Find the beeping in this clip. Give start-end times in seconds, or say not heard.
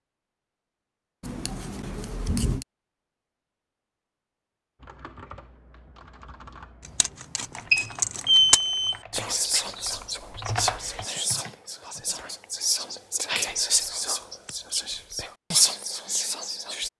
7.7-8.9.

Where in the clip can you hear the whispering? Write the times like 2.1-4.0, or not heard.
9.1-16.9.